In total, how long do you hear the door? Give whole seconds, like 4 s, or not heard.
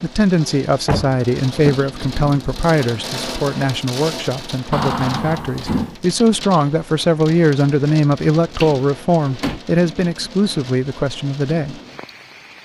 3 s.